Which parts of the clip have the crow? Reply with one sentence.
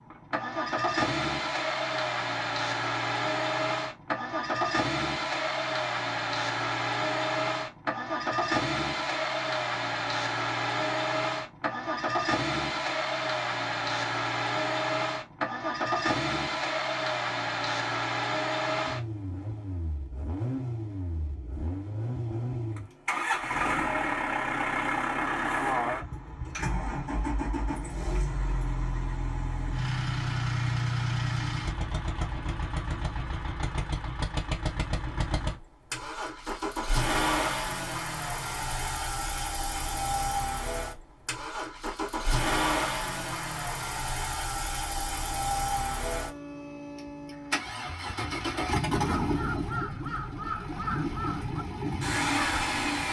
You can hear the crow from 49.1 to 53.0 s.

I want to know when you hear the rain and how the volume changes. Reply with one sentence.
The rain can't be heard in this clip.